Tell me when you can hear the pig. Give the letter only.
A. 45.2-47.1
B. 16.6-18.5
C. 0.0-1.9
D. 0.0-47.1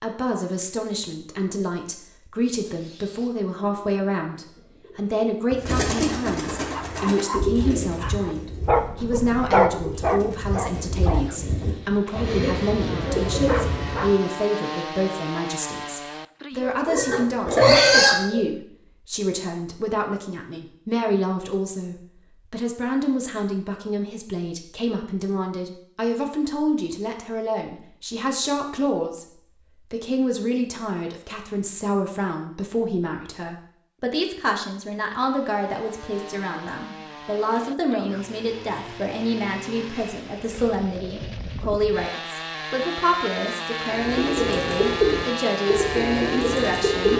B.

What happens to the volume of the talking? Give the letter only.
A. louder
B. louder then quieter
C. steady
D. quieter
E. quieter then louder
C.